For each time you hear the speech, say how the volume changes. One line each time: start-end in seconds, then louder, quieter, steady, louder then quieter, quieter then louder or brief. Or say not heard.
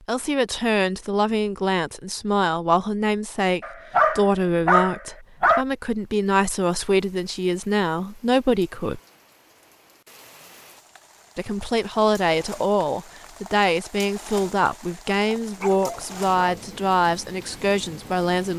0.1-9.0 steady
11.3-18.5 steady.